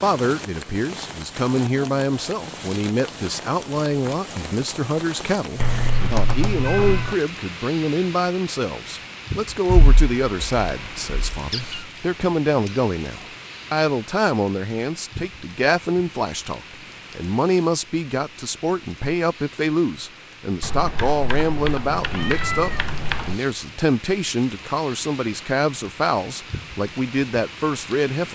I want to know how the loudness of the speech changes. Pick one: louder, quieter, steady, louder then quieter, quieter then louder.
steady.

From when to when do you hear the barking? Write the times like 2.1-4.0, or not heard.
not heard.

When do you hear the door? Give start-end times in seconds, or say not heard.
not heard.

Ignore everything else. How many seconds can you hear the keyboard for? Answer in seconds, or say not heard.
6 s.